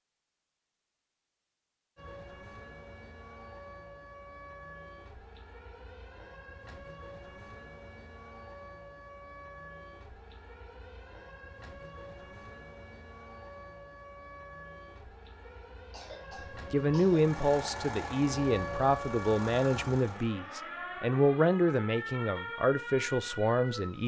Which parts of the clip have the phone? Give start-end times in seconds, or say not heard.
not heard.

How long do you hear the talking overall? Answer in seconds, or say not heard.
7 s.